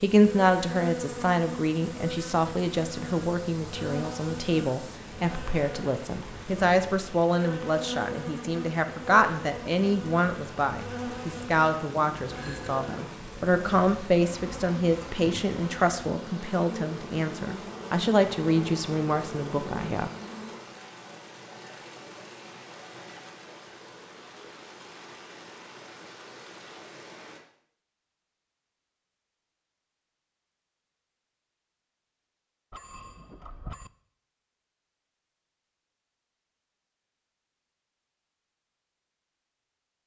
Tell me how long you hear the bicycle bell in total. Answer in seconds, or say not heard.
2 s.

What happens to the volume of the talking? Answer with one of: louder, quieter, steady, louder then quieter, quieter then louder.
steady.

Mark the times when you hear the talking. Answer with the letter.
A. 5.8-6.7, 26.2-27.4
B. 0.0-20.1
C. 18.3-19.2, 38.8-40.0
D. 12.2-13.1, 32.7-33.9
B.